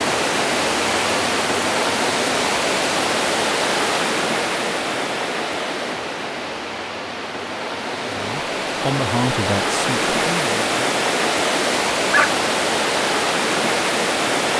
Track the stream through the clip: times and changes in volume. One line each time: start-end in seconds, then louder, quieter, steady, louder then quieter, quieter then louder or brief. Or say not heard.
0.0-14.5 quieter then louder.